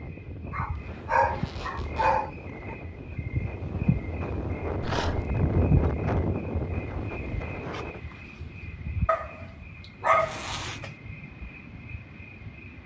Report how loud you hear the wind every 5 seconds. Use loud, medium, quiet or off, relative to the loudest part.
medium, loud, off.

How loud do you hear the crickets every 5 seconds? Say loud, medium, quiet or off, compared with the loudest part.
loud, loud, medium.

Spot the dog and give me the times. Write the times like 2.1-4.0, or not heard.
0.5-2.8, 4.8-5.2, 9.1-10.9.